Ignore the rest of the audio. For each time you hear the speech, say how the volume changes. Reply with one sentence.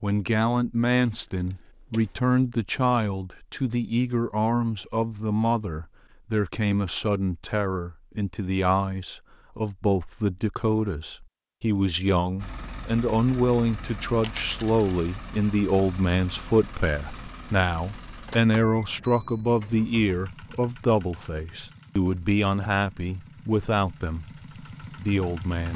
The speech can be heard from 0.0 to 25.7 s, at a steady volume.